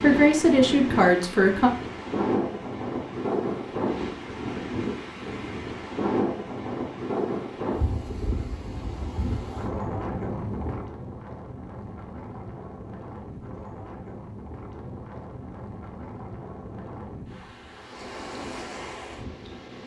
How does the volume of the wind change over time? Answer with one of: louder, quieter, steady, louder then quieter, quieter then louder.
quieter.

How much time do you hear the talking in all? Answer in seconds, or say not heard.
2 s.